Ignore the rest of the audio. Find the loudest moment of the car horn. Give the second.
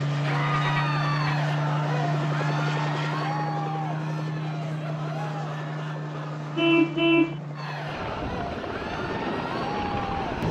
7 s.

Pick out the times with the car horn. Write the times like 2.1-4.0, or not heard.
0.5-1.4, 6.5-7.3.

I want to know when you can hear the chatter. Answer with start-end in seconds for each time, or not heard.
0.1-10.4.